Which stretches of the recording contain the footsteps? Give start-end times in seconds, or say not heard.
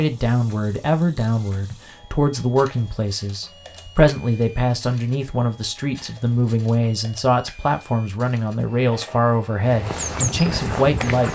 9.6-11.2.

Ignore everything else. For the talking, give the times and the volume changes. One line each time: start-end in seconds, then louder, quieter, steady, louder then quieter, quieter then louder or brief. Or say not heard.
0.0-11.2 steady.